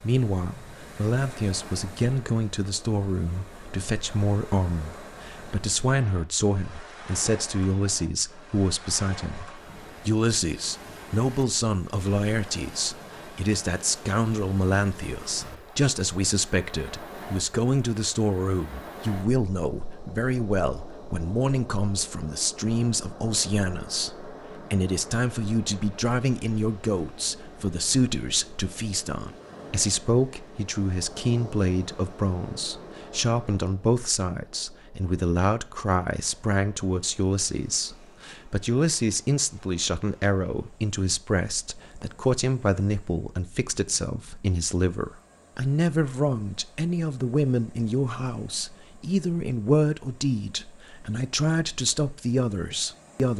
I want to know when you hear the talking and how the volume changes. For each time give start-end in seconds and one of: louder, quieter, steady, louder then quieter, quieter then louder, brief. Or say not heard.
0.0-53.3 steady.